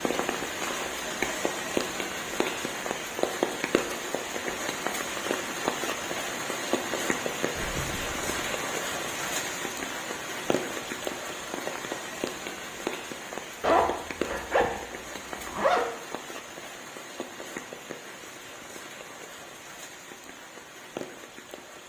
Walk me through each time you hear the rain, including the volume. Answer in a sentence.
You can hear the rain from 0.0 to 21.8 s, getting quieter.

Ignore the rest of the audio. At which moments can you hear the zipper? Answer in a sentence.
The zipper can be heard from 7.5 to 8.3 s and from 13.6 to 15.8 s.